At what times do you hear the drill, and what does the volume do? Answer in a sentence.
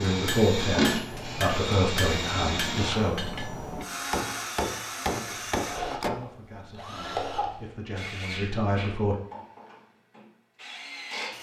You can hear the drill from 0.0 to 11.3 s, getting quieter.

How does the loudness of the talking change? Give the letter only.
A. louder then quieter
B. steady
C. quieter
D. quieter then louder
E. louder
D.